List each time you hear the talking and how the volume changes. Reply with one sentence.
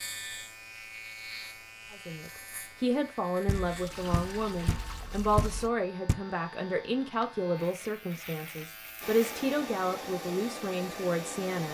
The talking can be heard from 1.9 to 11.6 s, at a steady volume.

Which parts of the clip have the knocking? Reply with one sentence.
The knocking can be heard from 3.5 to 6.2 s.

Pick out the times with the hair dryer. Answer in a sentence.
You can hear the hair dryer from 9.0 to 11.6 s.